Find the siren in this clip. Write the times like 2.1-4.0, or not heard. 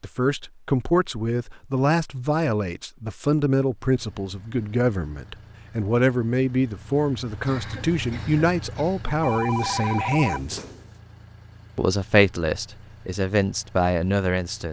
not heard.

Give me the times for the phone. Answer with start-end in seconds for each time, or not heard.
9.2-10.9.